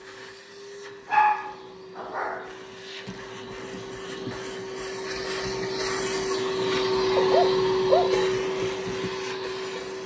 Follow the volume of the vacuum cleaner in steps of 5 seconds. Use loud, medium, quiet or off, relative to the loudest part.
quiet, loud.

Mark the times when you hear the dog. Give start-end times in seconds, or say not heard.
1.1-2.5, 7.2-8.2.